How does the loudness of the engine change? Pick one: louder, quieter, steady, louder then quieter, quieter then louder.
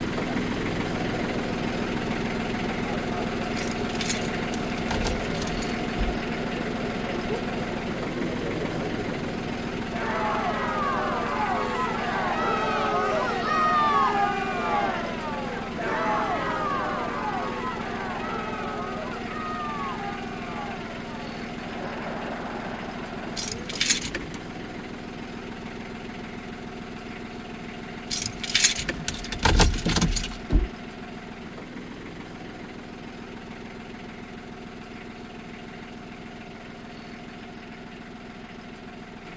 quieter.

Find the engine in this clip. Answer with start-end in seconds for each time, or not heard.
0.0-39.3.